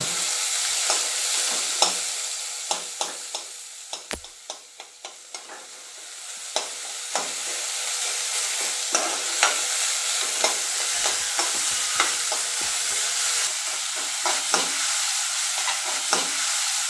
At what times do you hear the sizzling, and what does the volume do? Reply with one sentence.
You can hear the sizzling from 0.0 to 16.8 s, getting quieter then louder.